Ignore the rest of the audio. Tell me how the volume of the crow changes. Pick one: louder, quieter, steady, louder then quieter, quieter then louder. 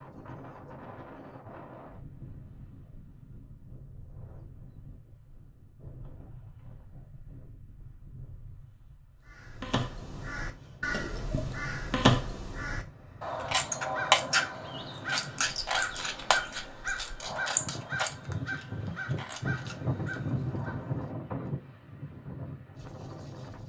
louder then quieter.